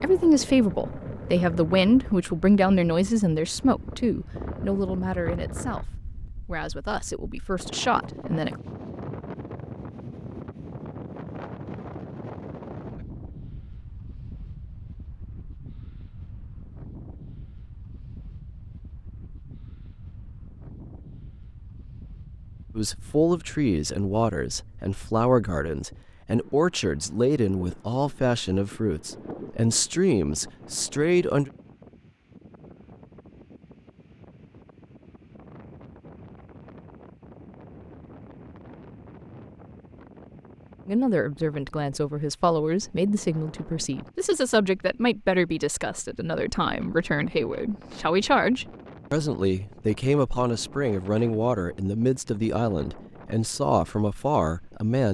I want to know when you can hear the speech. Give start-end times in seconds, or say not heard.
0.0-8.6, 22.8-31.5, 40.9-55.0.